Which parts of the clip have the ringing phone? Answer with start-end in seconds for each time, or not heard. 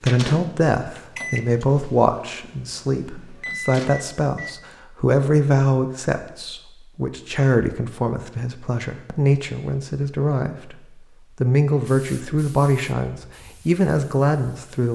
not heard.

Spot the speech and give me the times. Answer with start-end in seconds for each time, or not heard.
0.0-14.9.